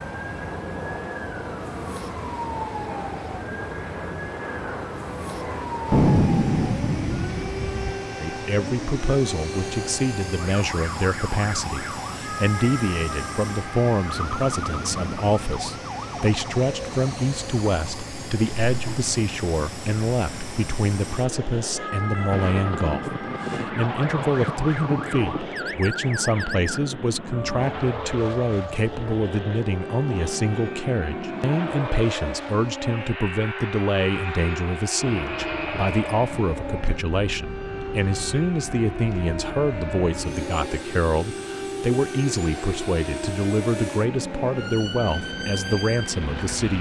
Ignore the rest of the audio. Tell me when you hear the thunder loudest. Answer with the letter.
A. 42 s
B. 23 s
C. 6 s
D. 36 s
C.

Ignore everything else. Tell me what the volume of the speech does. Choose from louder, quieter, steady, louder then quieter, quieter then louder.
steady.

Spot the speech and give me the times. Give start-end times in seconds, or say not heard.
8.2-46.7.